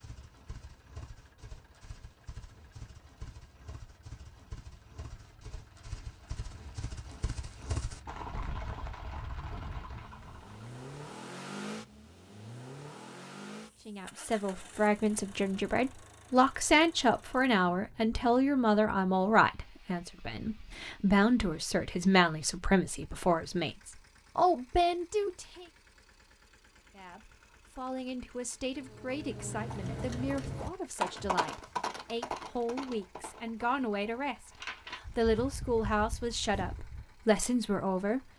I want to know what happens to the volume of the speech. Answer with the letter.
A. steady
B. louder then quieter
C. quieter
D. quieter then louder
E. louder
D.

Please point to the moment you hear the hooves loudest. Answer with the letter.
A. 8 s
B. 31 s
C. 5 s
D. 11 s
B.